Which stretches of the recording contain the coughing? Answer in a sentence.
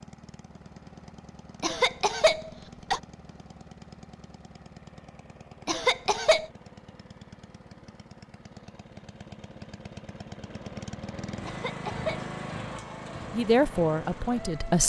The coughing can be heard from 1.6 to 3.0 s, from 5.7 to 6.5 s and from 11.4 to 12.3 s.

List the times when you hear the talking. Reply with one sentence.
The talking can be heard from 13.3 to 14.8 s.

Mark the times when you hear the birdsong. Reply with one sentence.
The birdsong can't be heard in this clip.